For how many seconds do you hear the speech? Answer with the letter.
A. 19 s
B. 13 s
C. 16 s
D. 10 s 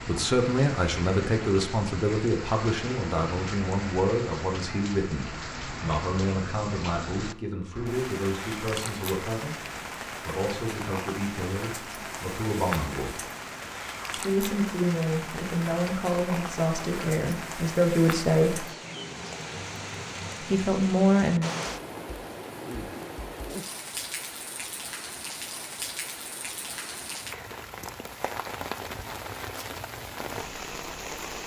A.